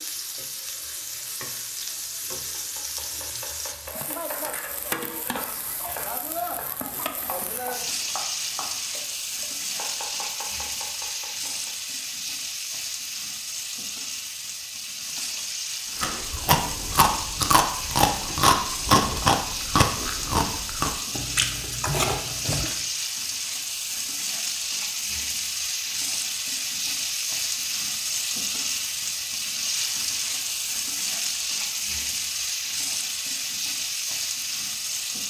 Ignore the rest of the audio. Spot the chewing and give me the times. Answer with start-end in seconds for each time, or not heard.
15.9-22.8.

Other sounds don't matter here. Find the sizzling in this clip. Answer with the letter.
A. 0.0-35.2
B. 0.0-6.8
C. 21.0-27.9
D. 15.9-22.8
A.